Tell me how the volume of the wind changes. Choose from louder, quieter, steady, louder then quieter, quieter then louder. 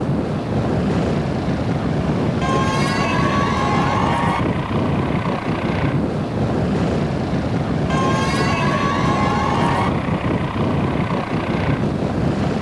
steady.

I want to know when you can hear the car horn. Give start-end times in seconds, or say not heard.
not heard.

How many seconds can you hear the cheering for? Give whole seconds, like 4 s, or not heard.
4 s.